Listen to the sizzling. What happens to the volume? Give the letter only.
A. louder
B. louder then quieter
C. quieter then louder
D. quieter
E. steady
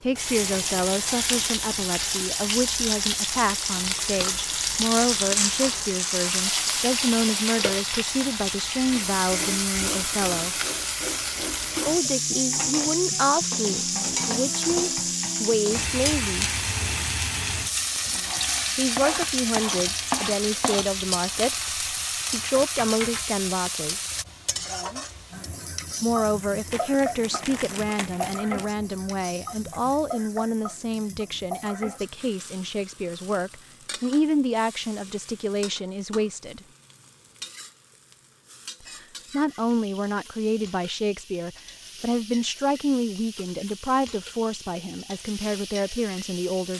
D.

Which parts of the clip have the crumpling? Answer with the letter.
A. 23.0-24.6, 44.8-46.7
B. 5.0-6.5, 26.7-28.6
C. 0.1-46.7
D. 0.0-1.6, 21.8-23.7
B.